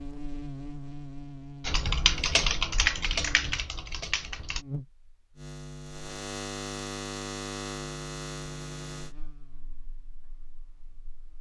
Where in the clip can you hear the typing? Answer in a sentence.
The typing can be heard from 1.6 to 4.7 s.